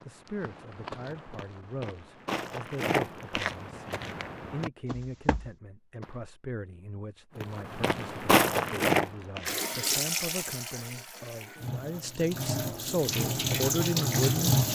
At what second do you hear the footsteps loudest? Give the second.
8 s.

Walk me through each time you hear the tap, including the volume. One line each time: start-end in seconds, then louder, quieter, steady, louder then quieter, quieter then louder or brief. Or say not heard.
9.4-14.7 quieter then louder.